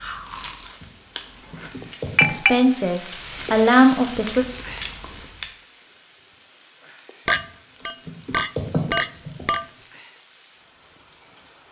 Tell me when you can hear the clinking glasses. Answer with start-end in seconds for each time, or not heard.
2.1-2.6, 7.2-9.7.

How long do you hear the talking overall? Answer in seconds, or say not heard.
2 s.